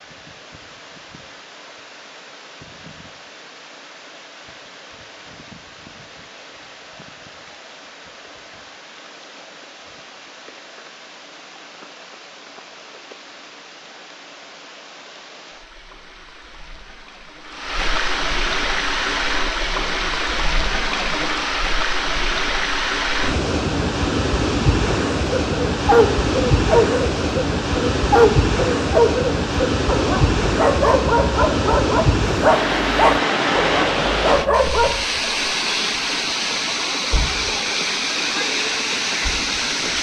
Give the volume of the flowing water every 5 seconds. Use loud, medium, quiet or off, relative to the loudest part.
quiet, quiet, quiet, medium, loud, loud, loud, loud.